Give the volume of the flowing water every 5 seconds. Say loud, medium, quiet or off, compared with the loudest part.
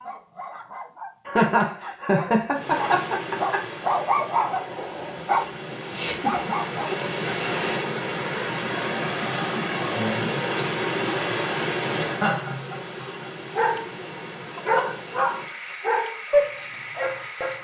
medium, loud, loud, medium.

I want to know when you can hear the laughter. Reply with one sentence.
The laughter can be heard from 1.2 to 3.6 s, from 5.9 to 7.0 s and from 12.1 to 13.1 s.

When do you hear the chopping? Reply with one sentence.
The chopping can't be heard in this clip.